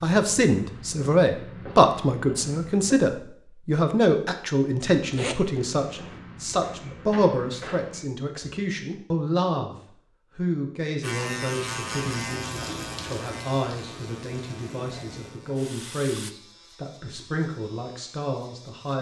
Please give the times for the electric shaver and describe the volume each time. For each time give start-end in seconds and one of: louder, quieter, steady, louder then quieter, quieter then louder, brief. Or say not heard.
11.0-18.9 quieter.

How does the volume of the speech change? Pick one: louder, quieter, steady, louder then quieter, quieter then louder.
quieter.